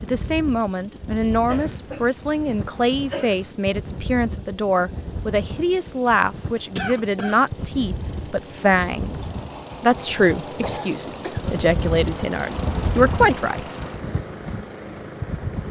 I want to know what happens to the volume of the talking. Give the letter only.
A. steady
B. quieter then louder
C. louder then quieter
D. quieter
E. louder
A.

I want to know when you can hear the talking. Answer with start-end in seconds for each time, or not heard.
0.0-13.8.